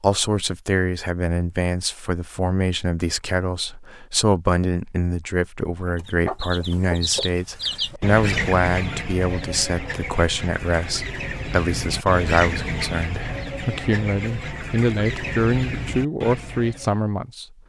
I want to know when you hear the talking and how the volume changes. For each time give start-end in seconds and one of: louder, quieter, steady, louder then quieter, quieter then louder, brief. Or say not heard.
0.0-17.4 steady.